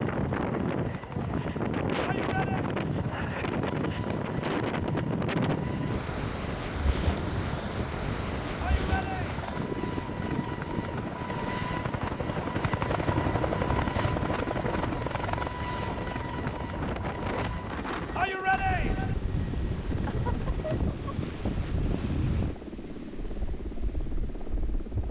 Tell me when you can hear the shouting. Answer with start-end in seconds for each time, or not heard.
2.0-2.6, 8.6-9.4, 18.1-19.1.